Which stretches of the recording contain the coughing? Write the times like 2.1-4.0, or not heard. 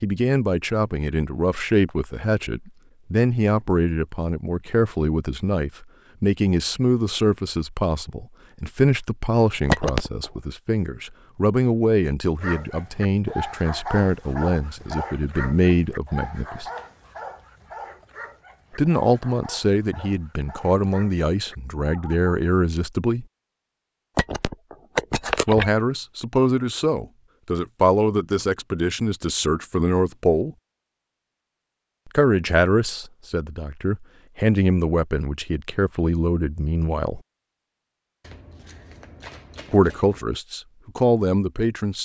not heard.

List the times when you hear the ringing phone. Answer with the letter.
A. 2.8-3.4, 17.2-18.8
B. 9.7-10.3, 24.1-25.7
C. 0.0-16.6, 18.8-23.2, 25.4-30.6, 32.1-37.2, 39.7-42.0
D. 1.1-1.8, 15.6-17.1
B.